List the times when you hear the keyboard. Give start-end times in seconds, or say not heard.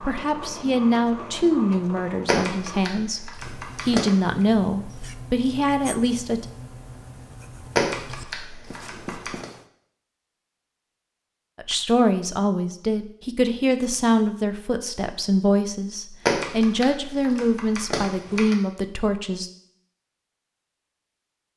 2.2-4.2, 7.8-9.4, 16.2-18.6.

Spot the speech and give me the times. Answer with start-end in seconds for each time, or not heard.
0.0-6.5, 11.6-19.5.